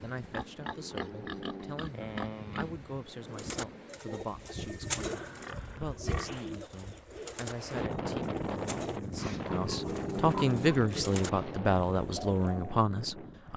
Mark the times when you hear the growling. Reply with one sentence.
The growling can be heard from 0.7 to 1.9 s, from 5.0 to 6.0 s and from 9.8 to 10.8 s.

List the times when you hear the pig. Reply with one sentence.
You can hear the pig from 0.2 to 2.7 s, from 5.2 to 7.3 s and from 9.2 to 11.6 s.